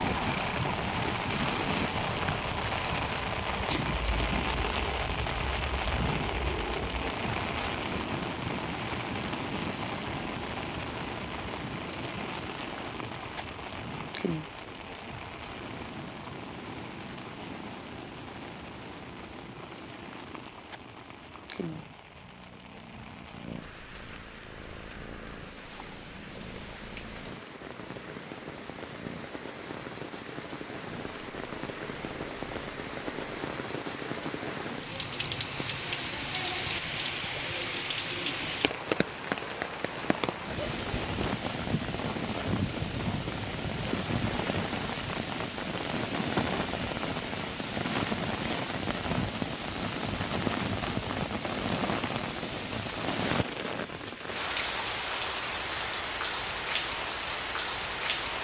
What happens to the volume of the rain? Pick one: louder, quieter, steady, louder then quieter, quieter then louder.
quieter then louder.